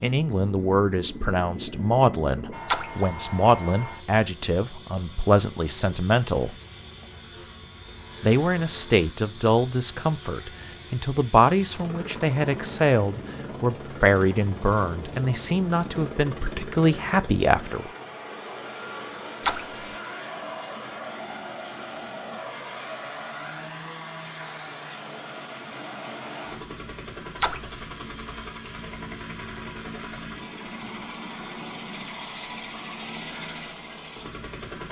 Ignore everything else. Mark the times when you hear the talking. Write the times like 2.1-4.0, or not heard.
0.0-6.5, 8.2-17.9.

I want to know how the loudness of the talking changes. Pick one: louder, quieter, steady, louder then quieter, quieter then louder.
steady.